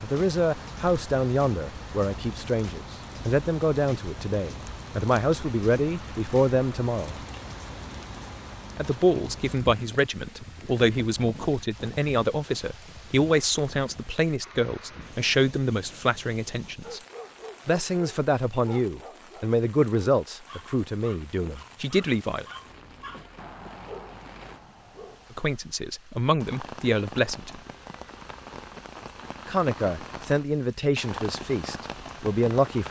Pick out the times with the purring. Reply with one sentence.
The purring can't be heard in this clip.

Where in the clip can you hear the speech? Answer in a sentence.
The speech can be heard from 0.0 to 7.2 s, from 8.8 to 17.0 s, from 17.6 to 22.4 s, from 25.3 to 27.6 s and from 29.4 to 32.8 s.